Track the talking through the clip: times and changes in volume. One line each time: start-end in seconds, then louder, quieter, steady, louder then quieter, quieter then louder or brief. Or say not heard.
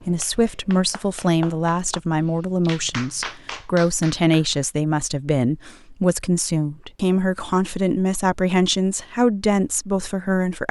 0.1-10.6 steady.